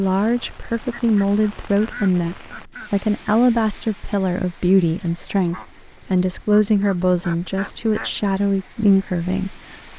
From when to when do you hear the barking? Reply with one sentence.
The barking can't be heard in this clip.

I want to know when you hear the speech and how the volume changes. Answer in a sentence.
The speech can be heard from 0.0 to 9.9 s, at a steady volume.